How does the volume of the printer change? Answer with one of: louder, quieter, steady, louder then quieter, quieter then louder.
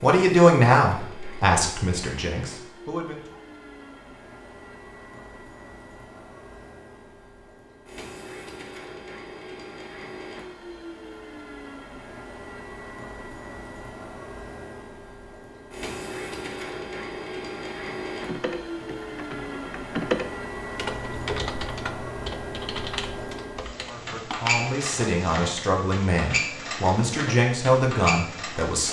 louder.